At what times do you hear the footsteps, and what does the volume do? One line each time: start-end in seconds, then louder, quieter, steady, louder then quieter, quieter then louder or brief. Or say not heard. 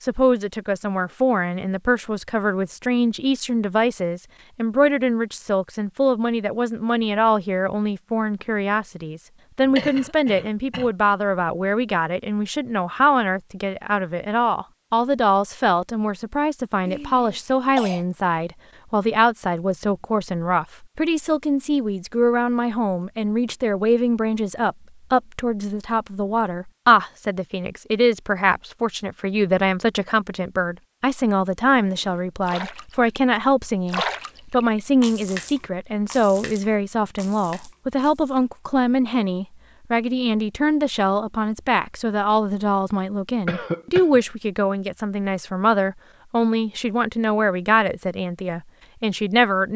not heard.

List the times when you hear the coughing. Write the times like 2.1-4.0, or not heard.
9.7-10.9, 16.9-18.1, 43.5-44.2.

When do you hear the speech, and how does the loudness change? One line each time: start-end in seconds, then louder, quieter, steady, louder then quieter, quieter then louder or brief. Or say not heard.
0.0-49.7 steady.